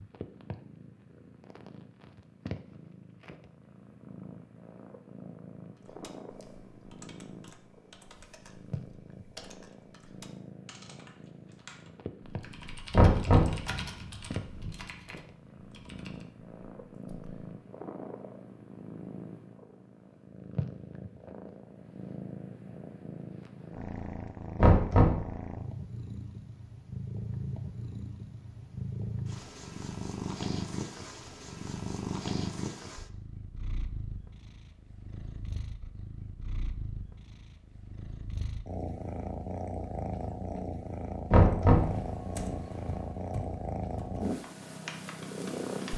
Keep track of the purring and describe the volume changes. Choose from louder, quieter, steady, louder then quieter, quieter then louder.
louder.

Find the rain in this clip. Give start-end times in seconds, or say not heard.
not heard.